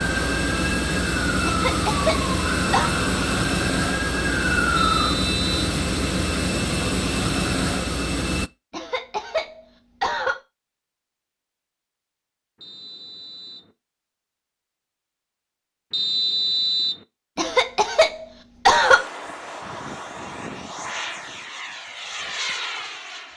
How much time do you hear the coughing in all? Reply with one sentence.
The coughing can be heard for 5 seconds in total.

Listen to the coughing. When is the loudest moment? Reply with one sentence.
The loudest moment of the coughing is at 19 seconds.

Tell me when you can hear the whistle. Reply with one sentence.
The whistle can be heard from 4.8 to 5.7 s, from 12.6 to 13.7 s and from 15.9 to 17.1 s.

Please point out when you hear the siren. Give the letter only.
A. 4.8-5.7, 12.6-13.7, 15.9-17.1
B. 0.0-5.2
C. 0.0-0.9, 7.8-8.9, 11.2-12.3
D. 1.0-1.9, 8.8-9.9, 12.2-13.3
B.